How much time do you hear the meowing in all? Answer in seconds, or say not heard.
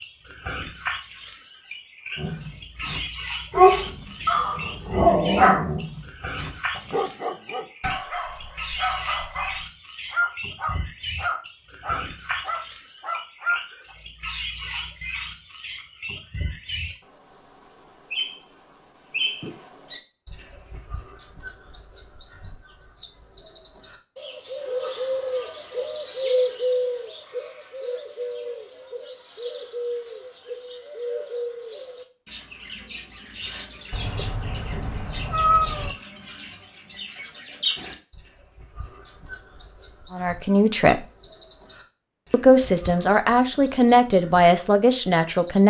2 s.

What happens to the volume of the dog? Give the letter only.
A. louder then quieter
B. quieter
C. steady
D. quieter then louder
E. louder
B.